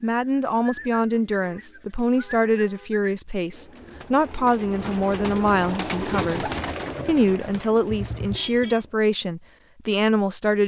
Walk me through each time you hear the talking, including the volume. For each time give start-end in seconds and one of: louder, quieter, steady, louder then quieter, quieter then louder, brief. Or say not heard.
0.0-10.6 steady.